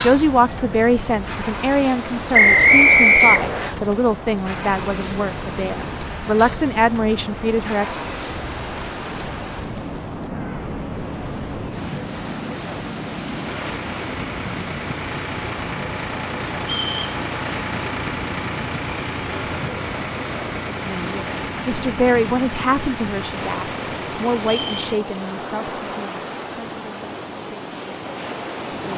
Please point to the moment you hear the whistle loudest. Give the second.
3 s.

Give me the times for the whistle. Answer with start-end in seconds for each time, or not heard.
2.3-3.8, 16.6-17.1, 24.4-24.9.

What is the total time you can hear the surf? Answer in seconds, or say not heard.
29 s.